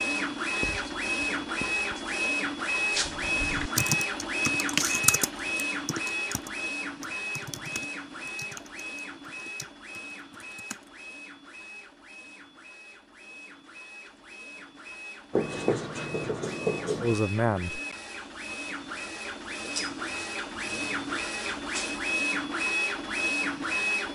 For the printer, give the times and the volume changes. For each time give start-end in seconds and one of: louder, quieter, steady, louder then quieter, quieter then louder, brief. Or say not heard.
0.0-24.1 quieter then louder.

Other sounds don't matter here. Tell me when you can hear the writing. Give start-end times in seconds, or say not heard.
0.6-1.9, 15.3-17.2.